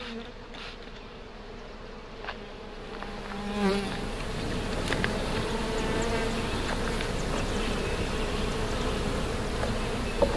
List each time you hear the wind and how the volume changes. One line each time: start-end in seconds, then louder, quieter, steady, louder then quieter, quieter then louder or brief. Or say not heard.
3.8-10.3 steady.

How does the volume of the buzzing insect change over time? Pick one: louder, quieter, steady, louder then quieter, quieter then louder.
louder.